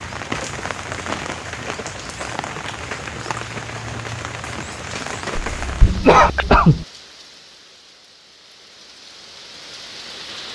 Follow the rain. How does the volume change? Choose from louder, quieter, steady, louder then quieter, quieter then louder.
quieter.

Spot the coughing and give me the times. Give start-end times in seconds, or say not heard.
5.3-6.8.